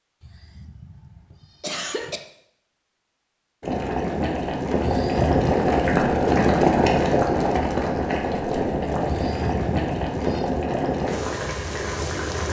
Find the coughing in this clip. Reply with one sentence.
You can hear the coughing from 0.2 to 2.2 s, from 4.8 to 5.5 s and from 9.1 to 10.5 s.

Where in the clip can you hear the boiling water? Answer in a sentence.
You can hear the boiling water from 3.6 to 12.4 s.